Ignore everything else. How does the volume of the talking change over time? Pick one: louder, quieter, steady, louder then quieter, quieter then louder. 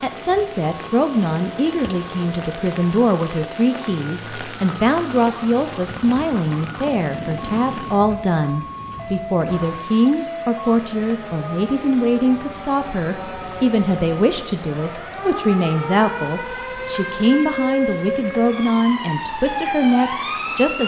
steady.